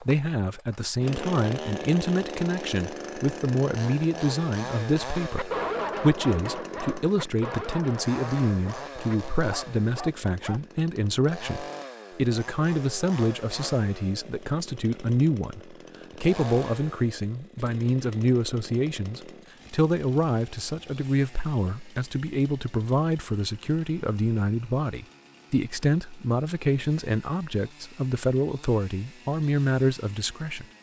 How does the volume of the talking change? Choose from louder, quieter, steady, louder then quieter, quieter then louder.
steady.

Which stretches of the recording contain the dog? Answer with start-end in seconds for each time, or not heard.
5.2-10.6.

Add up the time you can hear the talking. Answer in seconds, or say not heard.
31 s.